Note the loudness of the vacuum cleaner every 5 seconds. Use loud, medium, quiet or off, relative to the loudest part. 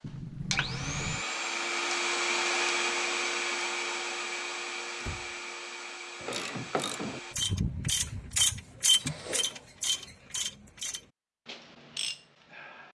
loud, medium, off.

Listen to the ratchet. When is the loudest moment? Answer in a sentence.
The volume of the ratchet peaks at 9 seconds.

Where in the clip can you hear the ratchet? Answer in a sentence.
You can hear the ratchet from 6.2 to 12.8 s.